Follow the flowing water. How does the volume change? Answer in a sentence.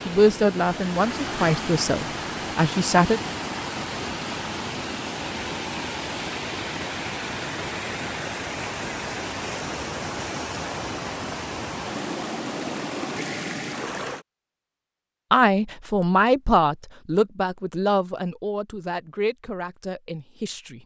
The volume of the flowing water stays about the same.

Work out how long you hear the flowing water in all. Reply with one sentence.
You can hear the flowing water for 14 seconds altogether.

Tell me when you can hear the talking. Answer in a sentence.
You can hear the talking from 0.1 to 3.2 s and from 15.3 to 20.8 s.